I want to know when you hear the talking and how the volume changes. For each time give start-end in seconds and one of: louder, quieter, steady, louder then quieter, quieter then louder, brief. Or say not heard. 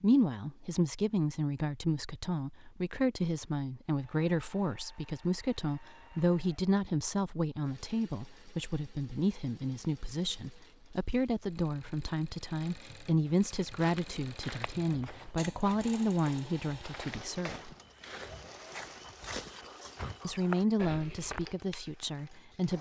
0.0-17.7 steady
20.2-22.7 brief.